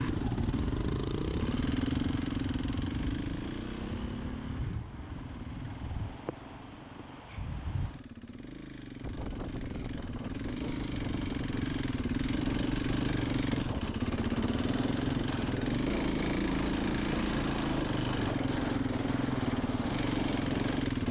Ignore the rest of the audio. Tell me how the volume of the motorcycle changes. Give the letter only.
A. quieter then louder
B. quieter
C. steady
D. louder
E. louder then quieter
A.